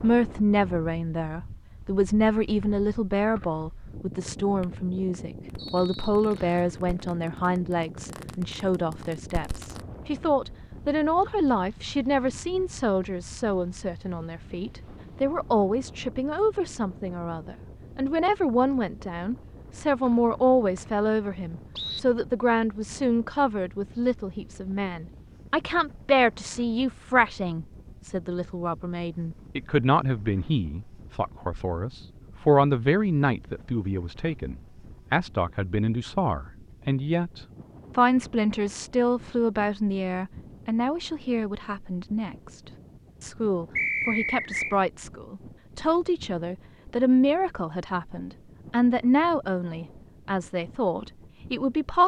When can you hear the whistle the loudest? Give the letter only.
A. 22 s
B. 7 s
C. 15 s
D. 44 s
D.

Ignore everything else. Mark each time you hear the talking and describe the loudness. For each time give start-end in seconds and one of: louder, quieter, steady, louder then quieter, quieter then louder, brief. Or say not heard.
0.0-52.0 steady.